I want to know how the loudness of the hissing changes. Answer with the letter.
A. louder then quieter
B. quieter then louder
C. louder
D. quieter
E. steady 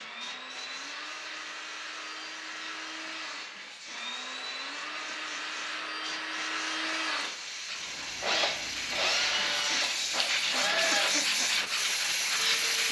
C.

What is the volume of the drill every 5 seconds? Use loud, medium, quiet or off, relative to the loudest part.
medium, loud, loud.